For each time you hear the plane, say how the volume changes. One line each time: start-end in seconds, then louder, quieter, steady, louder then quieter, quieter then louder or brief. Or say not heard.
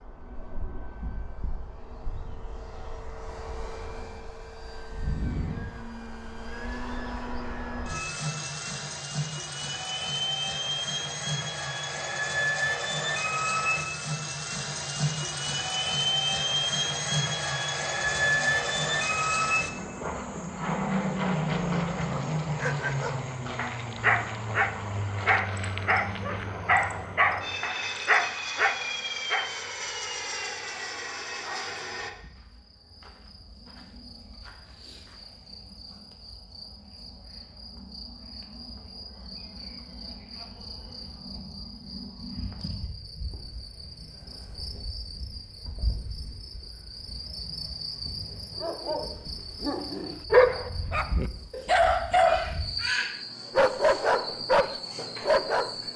0.0-32.1 louder then quieter.